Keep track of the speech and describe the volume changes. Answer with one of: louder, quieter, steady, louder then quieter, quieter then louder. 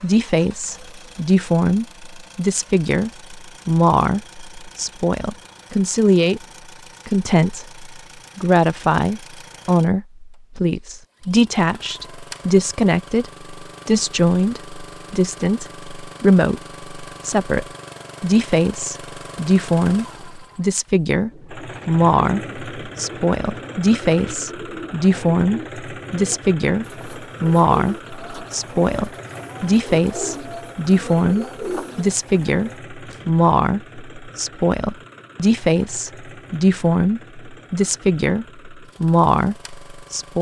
steady.